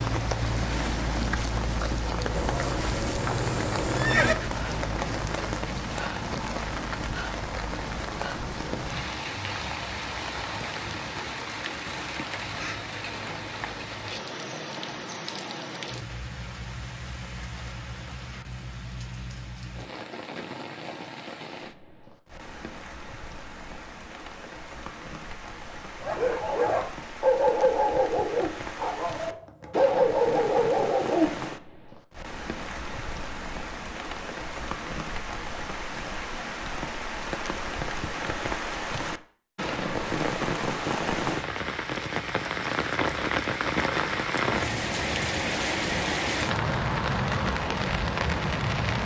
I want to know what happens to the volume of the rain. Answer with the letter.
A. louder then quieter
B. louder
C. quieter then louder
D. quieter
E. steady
C.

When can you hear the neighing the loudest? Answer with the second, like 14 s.
4 s.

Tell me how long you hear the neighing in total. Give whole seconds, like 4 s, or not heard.
2 s.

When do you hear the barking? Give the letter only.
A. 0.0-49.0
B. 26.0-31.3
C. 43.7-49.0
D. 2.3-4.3
B.